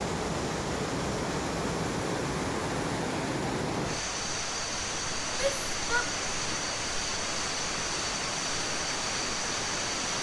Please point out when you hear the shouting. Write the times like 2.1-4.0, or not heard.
5.3-6.2.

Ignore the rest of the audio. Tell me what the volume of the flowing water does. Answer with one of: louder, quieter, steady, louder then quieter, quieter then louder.
steady.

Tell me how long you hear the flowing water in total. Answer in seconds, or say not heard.
10 s.